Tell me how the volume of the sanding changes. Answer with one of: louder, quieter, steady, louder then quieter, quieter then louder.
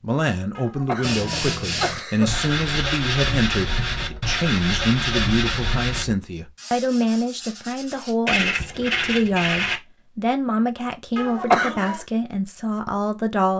quieter then louder.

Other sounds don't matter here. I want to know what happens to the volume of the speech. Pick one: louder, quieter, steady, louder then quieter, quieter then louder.
steady.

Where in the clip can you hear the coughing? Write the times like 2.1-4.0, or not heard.
0.6-2.4, 11.2-12.0.